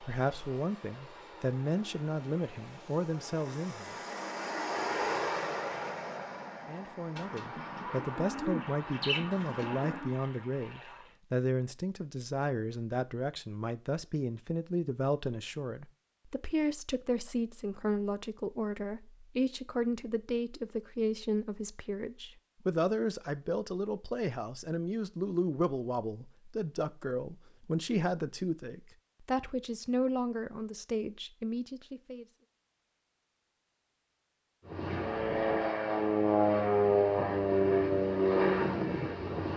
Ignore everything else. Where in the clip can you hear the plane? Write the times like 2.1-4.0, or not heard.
0.0-11.2, 34.6-39.5.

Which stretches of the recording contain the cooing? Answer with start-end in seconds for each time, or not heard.
7.2-10.1.